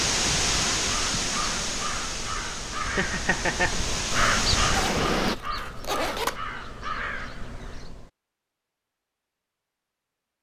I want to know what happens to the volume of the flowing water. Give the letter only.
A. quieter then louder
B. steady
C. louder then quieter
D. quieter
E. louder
A.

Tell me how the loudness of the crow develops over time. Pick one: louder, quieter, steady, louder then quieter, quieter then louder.
louder then quieter.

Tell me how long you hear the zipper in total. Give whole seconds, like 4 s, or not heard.
2 s.